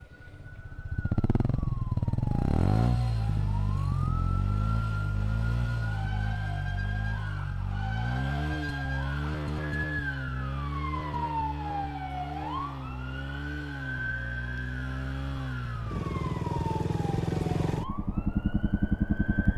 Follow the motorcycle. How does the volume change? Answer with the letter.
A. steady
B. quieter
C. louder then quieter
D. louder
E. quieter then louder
E.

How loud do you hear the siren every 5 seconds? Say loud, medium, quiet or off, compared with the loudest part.
medium, loud, loud, medium.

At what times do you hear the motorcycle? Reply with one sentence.
You can hear the motorcycle from 0.1 to 19.5 s.